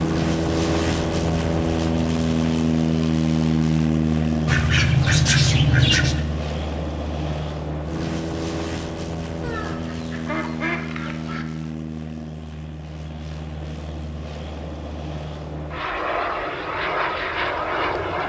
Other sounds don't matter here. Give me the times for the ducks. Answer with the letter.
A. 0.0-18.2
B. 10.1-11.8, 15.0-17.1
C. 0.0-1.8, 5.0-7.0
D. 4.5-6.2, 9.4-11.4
D.